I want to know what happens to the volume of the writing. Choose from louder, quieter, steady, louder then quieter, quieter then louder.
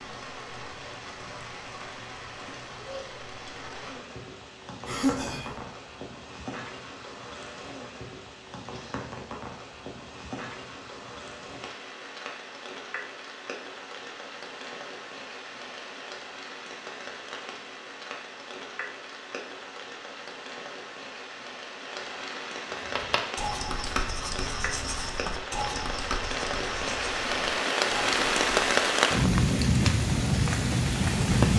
quieter.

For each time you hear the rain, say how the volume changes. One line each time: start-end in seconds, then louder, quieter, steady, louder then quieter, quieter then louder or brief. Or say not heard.
0.0-31.5 louder.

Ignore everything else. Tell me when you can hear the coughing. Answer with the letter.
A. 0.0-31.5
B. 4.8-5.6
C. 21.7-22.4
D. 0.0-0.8
B.